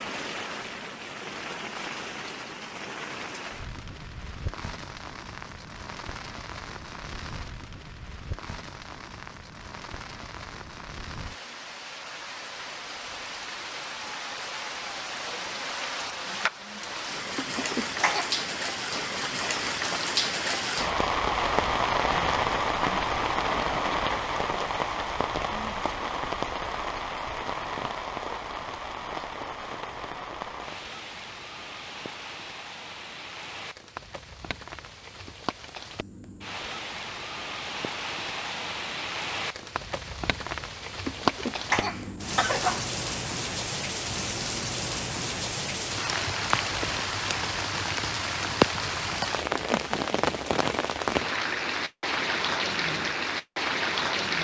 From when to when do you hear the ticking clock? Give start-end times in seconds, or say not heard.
not heard.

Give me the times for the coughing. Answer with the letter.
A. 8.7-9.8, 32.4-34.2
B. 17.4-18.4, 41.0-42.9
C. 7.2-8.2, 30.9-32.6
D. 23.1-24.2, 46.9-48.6
B.